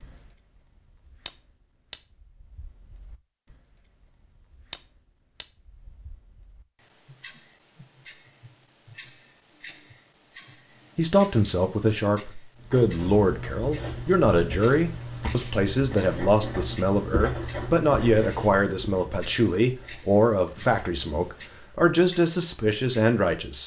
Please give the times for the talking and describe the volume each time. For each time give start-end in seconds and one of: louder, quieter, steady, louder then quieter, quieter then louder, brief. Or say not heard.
10.9-23.6 steady.